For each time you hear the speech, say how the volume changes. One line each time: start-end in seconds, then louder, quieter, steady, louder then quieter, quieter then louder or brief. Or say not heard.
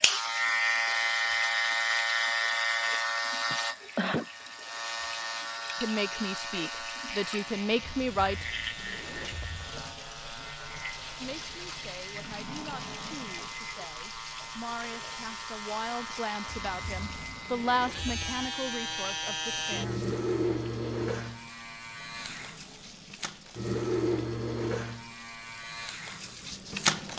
5.8-8.4 brief
11.2-20.0 louder then quieter.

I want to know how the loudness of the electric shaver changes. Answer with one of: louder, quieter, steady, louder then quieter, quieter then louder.
quieter then louder.